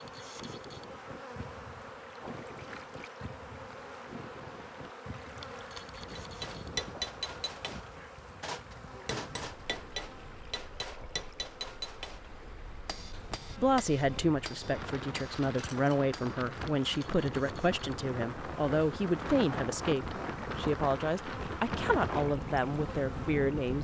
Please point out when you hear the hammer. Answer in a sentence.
You can hear the hammer from 6.2 to 16.5 s.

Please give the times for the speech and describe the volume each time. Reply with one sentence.
You can hear the speech from 13.6 to 23.7 s, at a steady volume.